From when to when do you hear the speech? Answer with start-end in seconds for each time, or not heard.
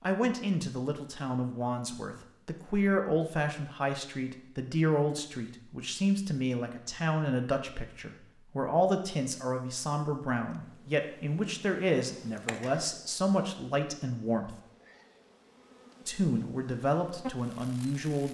0.0-14.6, 16.1-18.2.